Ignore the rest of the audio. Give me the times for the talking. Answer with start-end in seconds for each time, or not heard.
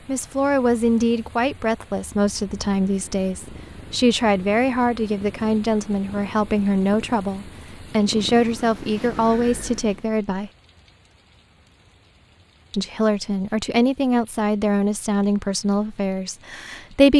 0.1-10.5, 12.7-17.1.